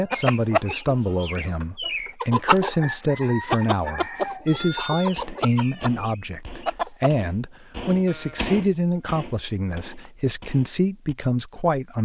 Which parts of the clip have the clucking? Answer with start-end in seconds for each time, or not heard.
0.1-7.1.